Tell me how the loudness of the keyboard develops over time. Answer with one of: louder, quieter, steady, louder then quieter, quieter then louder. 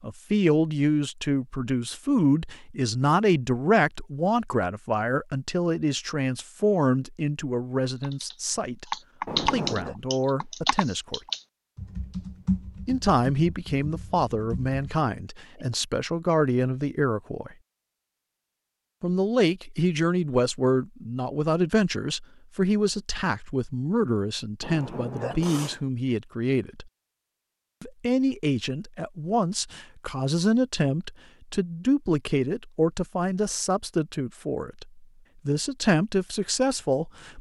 quieter.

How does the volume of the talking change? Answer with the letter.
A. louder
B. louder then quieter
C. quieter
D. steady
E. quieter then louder
D.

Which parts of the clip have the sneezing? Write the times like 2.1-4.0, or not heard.
9.2-9.9, 24.6-25.8.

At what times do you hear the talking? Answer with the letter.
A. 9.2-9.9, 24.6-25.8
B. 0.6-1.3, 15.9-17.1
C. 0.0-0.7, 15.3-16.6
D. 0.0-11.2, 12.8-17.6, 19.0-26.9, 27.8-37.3
D.